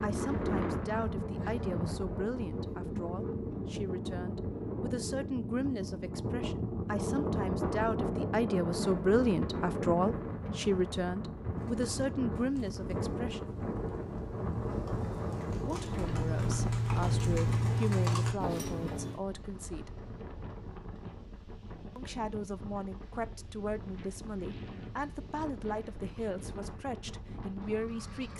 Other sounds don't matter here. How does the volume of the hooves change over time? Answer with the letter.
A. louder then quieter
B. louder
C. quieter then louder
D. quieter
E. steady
B.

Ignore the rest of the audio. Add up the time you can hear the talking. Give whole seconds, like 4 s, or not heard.
24 s.